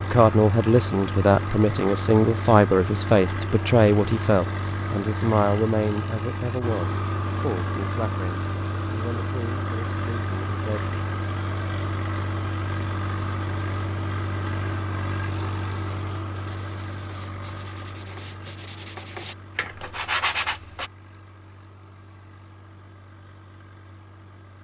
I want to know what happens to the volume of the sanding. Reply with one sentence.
The loudness of the sanding goes up.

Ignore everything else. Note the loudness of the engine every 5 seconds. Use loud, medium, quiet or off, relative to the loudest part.
loud, loud, loud, medium, quiet.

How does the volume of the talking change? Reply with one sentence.
The loudness of the talking goes down.